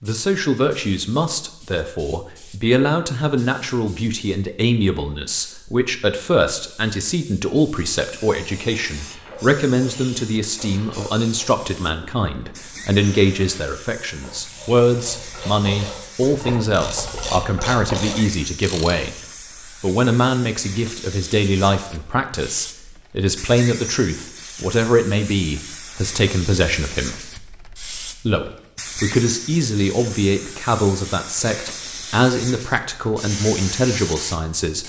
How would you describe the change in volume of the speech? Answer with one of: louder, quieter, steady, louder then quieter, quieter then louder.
steady.